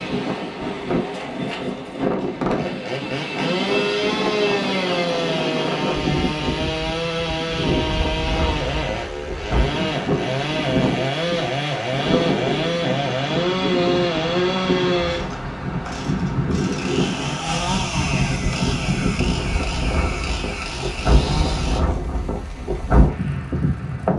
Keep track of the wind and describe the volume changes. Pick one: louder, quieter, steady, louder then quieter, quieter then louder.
steady.